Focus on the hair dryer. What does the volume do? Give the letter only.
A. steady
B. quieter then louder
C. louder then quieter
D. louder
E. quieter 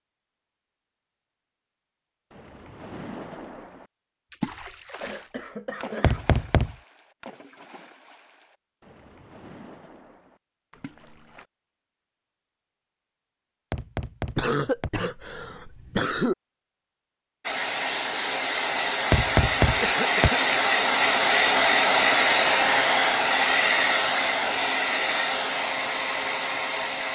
C.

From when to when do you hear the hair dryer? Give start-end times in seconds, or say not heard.
17.4-27.1.